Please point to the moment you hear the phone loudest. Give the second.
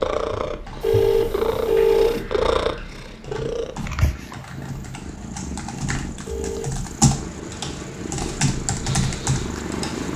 2 s.